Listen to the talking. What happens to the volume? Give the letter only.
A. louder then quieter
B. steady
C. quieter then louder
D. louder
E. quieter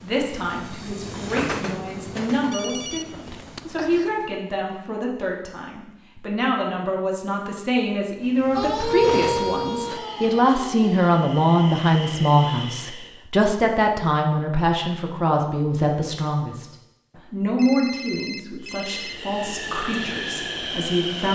A.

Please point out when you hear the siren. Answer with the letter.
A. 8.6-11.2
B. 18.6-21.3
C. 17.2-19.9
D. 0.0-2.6
A.